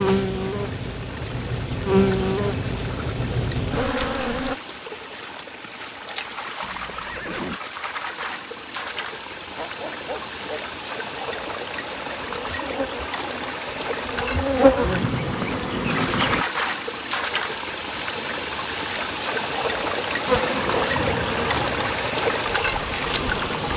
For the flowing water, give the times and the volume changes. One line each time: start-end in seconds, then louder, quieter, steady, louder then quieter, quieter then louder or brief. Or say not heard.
0.0-23.7 louder.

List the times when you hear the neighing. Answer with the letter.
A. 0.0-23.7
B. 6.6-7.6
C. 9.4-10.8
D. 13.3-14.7
B.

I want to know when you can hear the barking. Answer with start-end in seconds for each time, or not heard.
9.4-10.8.